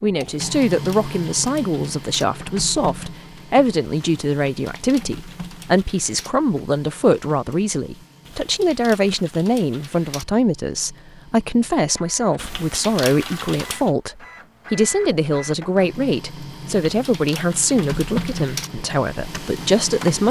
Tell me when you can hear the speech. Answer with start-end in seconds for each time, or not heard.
0.0-20.2.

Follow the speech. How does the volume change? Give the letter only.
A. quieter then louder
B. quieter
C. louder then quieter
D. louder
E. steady
E.